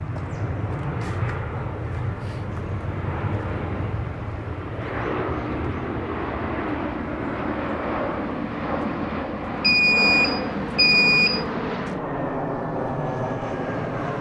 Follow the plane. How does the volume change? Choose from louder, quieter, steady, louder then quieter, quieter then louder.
steady.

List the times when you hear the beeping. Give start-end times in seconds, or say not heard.
9.6-11.4.